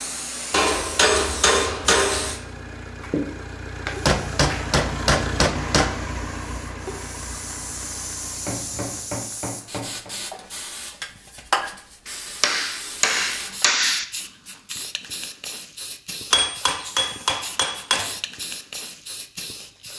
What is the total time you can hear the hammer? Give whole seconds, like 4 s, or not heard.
9 s.